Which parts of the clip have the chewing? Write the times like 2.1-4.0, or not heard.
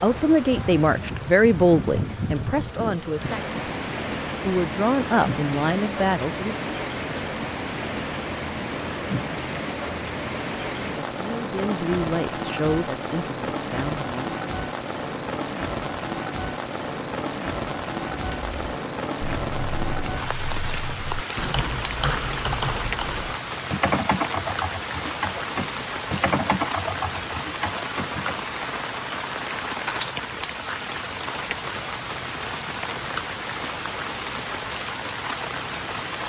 not heard.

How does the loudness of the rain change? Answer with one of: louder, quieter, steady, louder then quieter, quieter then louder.
steady.